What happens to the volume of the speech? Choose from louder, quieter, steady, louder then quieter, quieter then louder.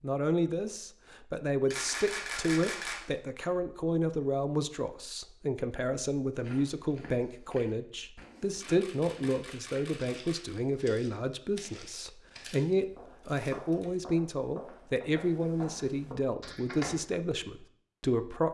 steady.